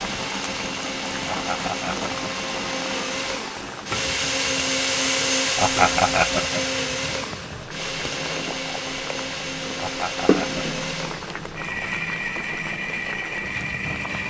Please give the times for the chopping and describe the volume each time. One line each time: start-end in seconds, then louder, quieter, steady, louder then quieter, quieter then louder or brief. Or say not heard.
not heard.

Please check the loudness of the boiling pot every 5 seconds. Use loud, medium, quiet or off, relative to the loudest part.
loud, medium, loud.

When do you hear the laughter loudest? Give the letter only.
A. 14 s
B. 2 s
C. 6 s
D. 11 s
C.